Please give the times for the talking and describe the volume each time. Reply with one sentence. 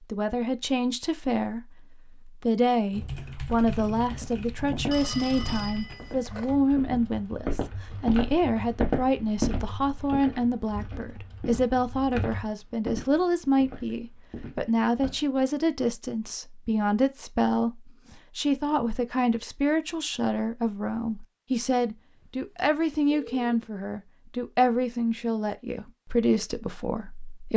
The talking can be heard from 0.0 to 27.5 s, at a steady volume.